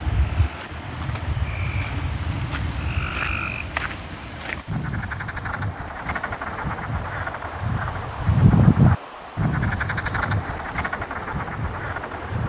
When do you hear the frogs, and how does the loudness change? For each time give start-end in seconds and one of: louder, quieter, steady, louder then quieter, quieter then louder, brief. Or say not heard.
0.0-12.4 louder then quieter.